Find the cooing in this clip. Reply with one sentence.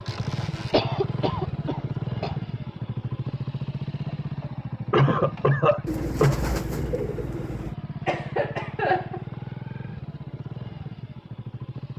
You can hear the cooing from 5.8 to 7.8 s.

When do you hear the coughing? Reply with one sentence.
You can hear the coughing from 0.7 to 2.4 s, from 4.9 to 6.3 s and from 8.1 to 9.2 s.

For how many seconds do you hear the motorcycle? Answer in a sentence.
The motorcycle can be heard for 12 seconds in total.